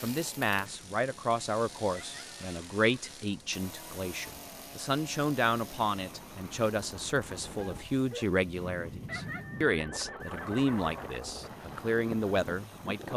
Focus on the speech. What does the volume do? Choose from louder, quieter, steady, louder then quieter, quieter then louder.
steady.